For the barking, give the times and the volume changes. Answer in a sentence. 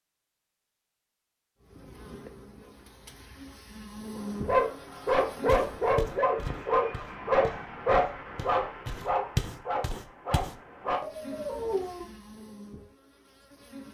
The barking can be heard from 4.2 to 12.1 s, getting quieter.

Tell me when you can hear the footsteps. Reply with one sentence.
You can hear the footsteps from 5.5 to 10.6 s.